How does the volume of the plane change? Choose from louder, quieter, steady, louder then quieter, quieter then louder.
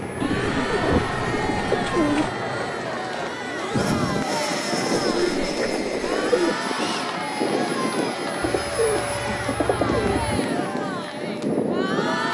steady.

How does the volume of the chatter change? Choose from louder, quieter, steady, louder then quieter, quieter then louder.
steady.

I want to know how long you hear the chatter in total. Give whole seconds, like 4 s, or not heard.
12 s.